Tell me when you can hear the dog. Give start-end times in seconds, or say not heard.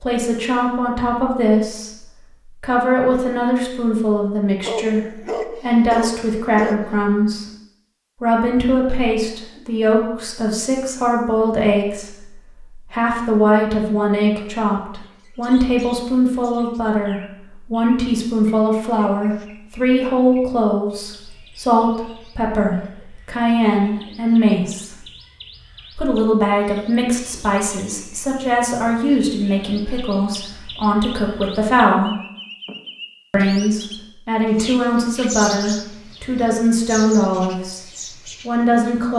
4.6-6.9.